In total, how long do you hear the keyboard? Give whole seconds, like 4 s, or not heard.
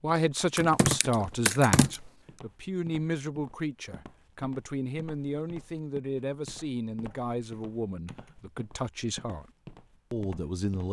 3 s.